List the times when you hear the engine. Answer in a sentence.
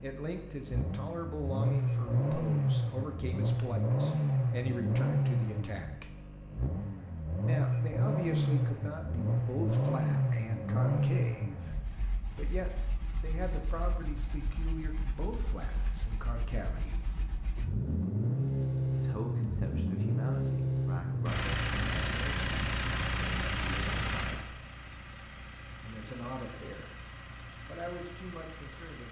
The engine can be heard from 0.0 to 29.0 s.